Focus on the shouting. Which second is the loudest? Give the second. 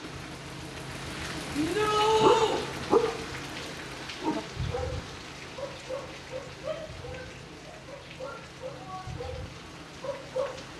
2 s.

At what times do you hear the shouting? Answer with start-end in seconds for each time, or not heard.
1.6-2.6, 6.6-9.1.